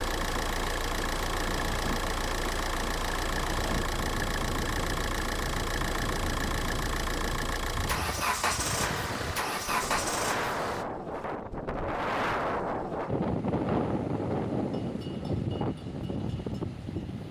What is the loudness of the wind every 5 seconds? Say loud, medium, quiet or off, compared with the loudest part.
medium, medium, loud, loud.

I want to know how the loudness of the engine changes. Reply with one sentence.
The volume of the engine stays about the same.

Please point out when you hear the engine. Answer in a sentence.
You can hear the engine from 0.0 to 10.8 s.